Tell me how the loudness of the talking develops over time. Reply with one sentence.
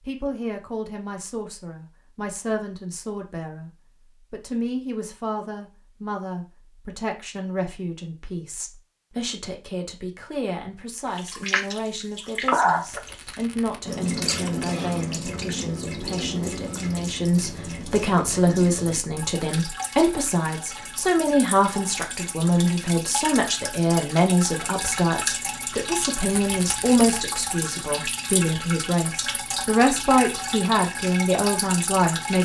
The volume of the talking goes up.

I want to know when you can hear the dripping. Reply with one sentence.
You can hear the dripping from 11.2 to 32.3 s.